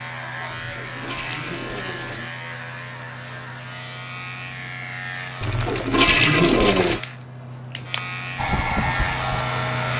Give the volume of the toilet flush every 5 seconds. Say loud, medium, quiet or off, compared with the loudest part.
quiet, loud.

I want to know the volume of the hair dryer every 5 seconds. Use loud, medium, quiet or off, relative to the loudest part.
off, loud.